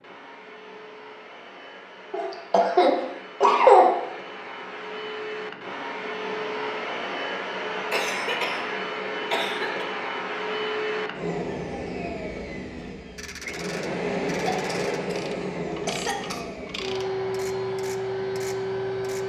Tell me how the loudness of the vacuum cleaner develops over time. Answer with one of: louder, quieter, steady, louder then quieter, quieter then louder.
louder.